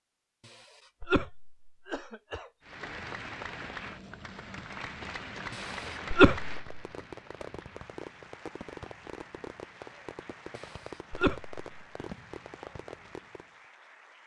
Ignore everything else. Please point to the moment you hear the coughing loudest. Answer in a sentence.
The volume of the coughing peaks at 6 seconds.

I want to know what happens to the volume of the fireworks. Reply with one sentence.
The loudness of the fireworks stays about the same.